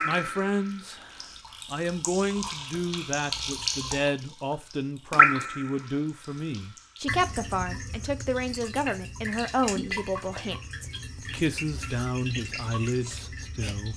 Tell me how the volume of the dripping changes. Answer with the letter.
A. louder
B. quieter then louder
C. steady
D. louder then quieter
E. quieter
D.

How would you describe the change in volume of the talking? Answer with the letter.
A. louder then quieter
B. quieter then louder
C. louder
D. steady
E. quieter
D.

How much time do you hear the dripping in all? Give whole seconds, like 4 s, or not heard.
13 s.